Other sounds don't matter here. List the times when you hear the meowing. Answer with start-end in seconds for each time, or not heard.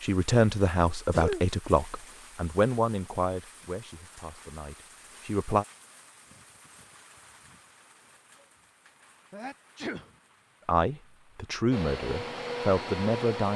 not heard.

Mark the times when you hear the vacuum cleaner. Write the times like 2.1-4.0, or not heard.
11.7-13.5.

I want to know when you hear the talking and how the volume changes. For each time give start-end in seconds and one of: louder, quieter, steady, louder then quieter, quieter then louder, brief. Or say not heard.
0.0-5.7 quieter
10.7-13.5 brief.